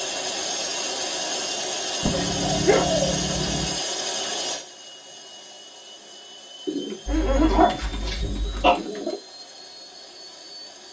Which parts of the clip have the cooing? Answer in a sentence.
The cooing can be heard from 2.0 to 3.8 s and from 6.7 to 9.2 s.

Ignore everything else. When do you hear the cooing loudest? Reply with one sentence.
The volume of the cooing peaks at 3 seconds.